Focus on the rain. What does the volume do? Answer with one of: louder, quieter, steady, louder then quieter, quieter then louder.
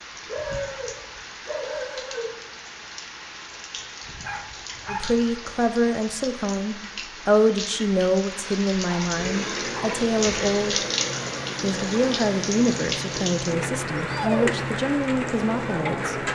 louder.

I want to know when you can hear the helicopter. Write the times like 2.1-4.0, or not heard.
9.1-16.3.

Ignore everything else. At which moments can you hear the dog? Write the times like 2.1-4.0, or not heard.
0.2-2.4, 4.2-5.0, 8.8-10.0, 13.9-14.7.